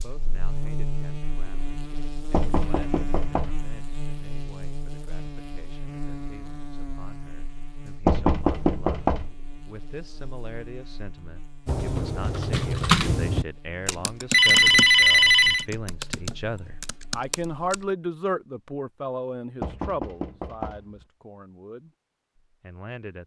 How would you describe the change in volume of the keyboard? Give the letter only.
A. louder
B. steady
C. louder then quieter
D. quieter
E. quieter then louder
D.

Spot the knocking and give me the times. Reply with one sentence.
You can hear the knocking from 2.3 to 3.7 s, from 8.1 to 9.3 s and from 19.6 to 21.1 s.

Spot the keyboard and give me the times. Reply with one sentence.
The keyboard can be heard from 11.7 to 17.9 s.